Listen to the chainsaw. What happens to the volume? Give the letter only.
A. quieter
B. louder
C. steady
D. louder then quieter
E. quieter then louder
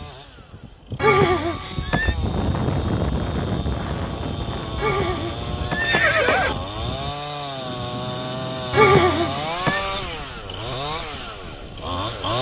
B.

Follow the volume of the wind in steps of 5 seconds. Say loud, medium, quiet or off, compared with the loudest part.
loud, medium, quiet.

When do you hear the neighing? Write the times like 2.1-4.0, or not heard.
0.9-2.1, 4.8-6.5, 8.7-9.8.